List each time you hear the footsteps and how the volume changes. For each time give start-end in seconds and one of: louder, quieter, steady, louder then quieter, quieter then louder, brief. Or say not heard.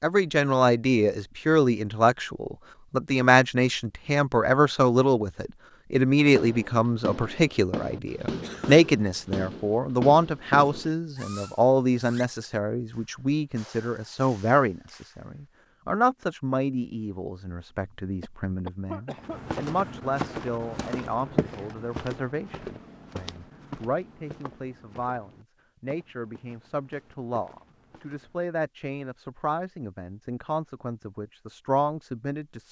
19.1-28.4 quieter.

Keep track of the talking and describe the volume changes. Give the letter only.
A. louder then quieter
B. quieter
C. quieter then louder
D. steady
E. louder
B.